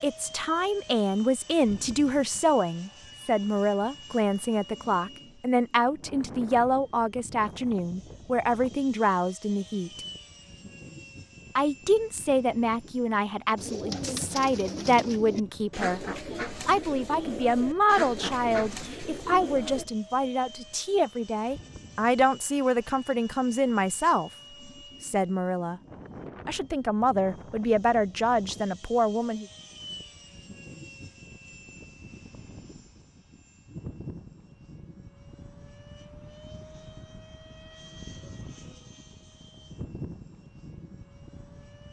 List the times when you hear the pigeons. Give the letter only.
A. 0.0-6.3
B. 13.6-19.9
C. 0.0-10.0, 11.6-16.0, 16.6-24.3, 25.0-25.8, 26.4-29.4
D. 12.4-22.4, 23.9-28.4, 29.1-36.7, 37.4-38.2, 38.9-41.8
B.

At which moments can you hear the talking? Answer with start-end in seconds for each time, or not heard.
0.0-10.0, 11.6-16.0, 16.6-24.3, 25.0-25.8, 26.4-29.4.